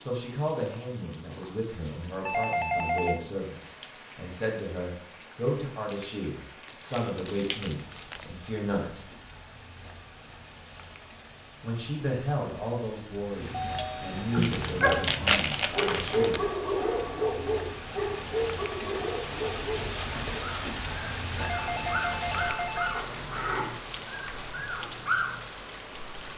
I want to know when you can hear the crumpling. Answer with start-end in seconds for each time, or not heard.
6.7-8.3, 14.3-16.4.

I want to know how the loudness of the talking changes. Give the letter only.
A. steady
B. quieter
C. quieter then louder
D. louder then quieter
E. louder
A.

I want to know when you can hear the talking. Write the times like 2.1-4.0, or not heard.
0.0-9.1, 11.6-16.6.